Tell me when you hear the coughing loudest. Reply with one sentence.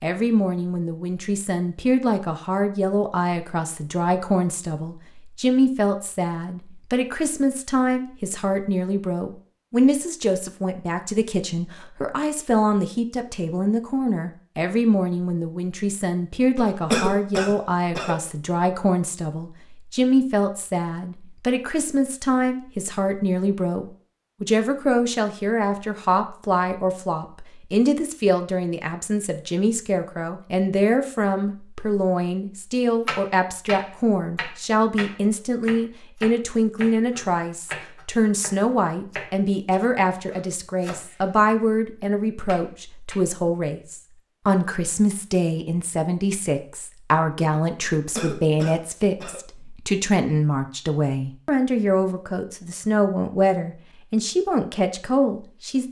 The loudest moment of the coughing is at 17 seconds.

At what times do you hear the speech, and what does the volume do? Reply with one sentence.
The speech can be heard from 0.0 to 55.8 s, at a steady volume.